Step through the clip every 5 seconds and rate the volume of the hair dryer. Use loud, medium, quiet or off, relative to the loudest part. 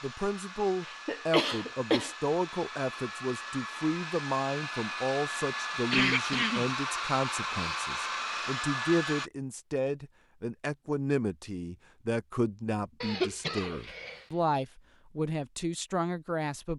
medium, loud, off, off.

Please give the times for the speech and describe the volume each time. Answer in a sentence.
You can hear the speech from 0.0 to 16.7 s, at a steady volume.